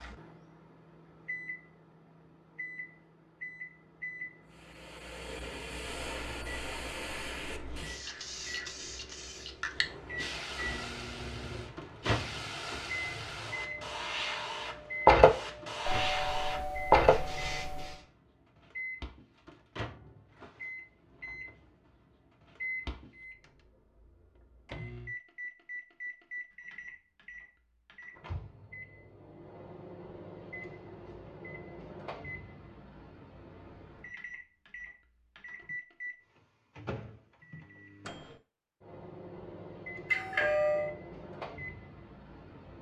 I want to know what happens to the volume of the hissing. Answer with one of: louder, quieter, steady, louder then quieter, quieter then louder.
louder.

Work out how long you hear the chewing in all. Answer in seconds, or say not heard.
not heard.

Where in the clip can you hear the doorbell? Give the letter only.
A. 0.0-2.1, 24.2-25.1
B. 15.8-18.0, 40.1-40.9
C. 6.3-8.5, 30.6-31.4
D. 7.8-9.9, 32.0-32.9
B.